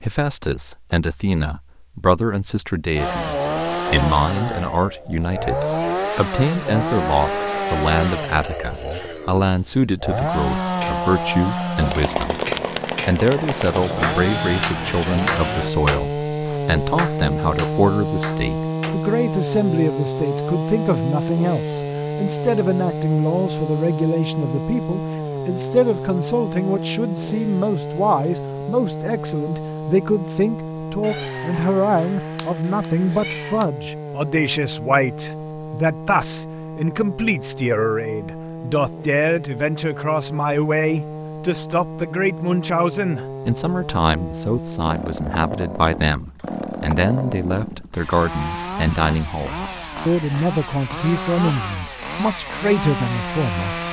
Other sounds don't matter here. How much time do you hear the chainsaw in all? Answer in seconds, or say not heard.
51 s.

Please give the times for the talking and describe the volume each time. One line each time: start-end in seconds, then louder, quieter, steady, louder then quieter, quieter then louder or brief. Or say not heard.
0.0-12.4 steady
13.1-53.8 steady.